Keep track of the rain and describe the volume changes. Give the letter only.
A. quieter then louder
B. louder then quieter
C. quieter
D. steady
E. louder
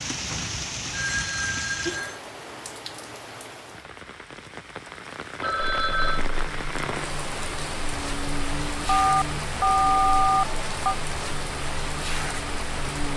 A.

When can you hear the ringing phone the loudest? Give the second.
10 s.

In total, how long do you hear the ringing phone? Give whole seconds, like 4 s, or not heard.
5 s.